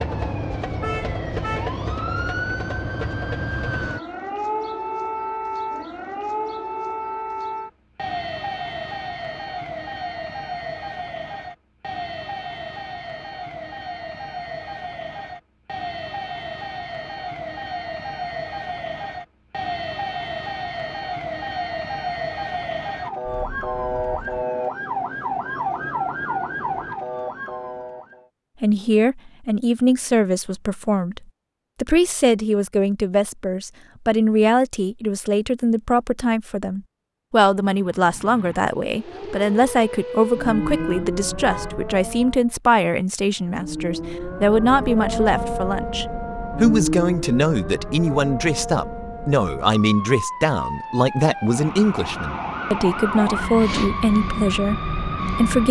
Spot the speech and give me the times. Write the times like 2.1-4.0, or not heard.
28.6-31.2, 31.8-55.6.